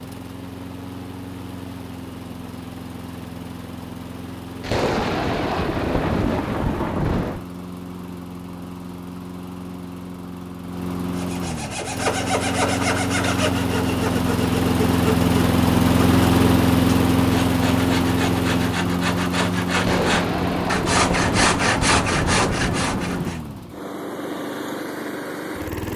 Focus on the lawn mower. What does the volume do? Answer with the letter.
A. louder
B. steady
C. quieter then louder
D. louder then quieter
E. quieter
D.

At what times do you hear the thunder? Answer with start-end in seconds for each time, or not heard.
4.6-7.5, 19.8-23.3.